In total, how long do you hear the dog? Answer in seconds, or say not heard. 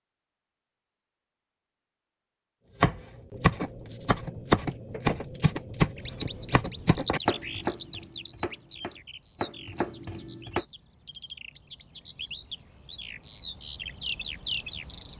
not heard.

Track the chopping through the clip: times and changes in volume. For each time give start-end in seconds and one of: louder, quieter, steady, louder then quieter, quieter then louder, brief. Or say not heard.
2.8-10.7 quieter.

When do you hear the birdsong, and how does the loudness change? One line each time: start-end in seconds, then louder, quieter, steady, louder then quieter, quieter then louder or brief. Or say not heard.
6.0-15.1 quieter then louder.